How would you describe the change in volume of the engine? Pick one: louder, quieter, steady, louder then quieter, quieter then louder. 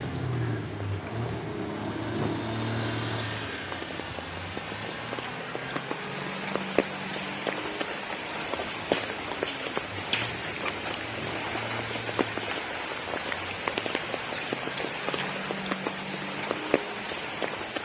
quieter.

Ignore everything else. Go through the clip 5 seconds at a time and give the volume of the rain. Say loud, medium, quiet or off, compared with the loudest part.
medium, loud, loud, loud.